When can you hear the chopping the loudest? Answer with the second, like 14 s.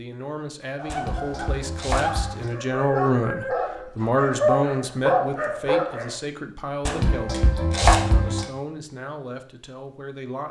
8 s.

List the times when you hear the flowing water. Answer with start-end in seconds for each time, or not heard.
not heard.